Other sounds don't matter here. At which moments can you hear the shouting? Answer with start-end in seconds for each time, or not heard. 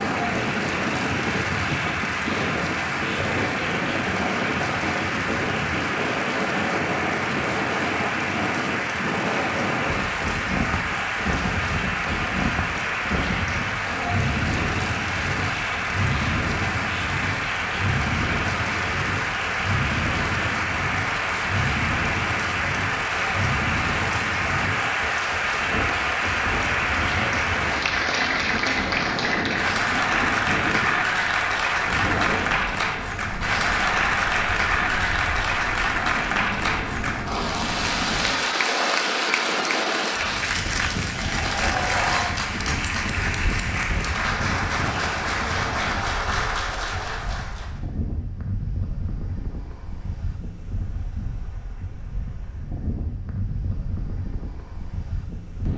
not heard.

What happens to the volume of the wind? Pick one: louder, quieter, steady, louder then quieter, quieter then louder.
quieter.